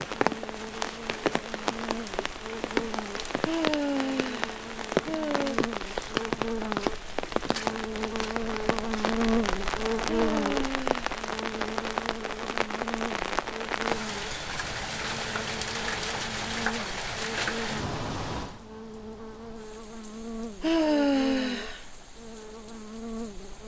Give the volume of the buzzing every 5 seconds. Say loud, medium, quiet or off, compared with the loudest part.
medium, loud, loud, medium, medium.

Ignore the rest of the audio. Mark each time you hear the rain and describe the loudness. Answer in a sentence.
The rain can be heard from 0.0 to 23.6 s, getting quieter.